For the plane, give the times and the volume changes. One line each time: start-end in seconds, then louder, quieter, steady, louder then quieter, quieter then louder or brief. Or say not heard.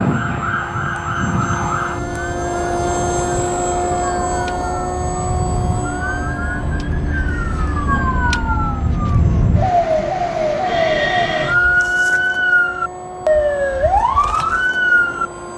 0.0-15.5 quieter.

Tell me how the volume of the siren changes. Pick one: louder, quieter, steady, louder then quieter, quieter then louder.
louder.